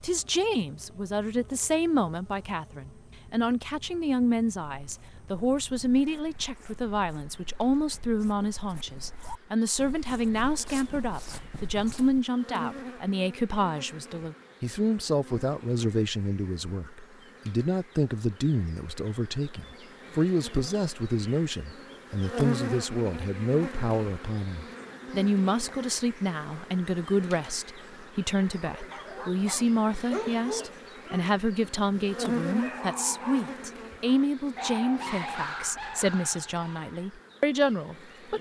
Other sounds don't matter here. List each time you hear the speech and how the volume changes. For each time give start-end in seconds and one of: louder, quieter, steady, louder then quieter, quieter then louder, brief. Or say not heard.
0.0-38.3 steady.